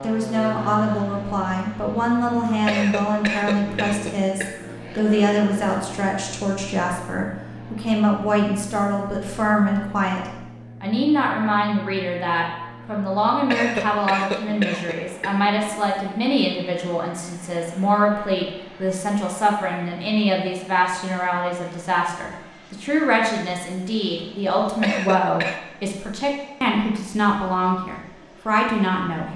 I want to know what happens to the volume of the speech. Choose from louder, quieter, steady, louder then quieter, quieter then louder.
steady.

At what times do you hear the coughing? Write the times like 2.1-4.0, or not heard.
2.6-4.5, 13.5-15.4, 24.8-25.6.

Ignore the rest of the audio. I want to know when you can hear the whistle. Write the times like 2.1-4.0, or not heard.
not heard.